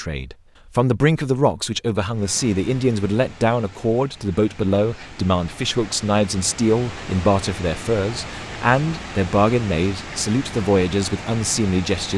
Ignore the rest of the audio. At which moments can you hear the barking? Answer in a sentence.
The barking can't be heard in this clip.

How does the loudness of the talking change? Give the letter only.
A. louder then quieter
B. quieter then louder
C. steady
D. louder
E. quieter
C.